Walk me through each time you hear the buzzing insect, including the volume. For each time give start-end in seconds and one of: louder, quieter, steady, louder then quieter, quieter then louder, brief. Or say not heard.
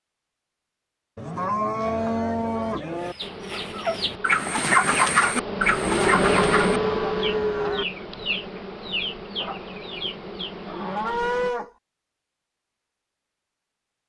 3.2-11.6 louder then quieter.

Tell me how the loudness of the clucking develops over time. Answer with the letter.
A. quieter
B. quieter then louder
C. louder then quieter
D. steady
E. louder
C.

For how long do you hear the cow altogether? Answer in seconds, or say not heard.
5 s.